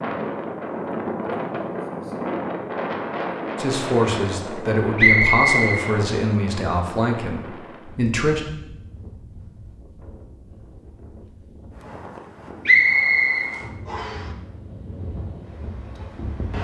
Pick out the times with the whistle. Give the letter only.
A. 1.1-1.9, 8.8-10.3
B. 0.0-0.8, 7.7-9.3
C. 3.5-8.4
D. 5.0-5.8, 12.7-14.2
D.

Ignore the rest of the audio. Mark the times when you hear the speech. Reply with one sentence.
You can hear the speech from 3.5 to 8.4 s.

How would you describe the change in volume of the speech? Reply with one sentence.
The loudness of the speech goes down.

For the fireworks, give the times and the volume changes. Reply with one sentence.
You can't hear the fireworks here.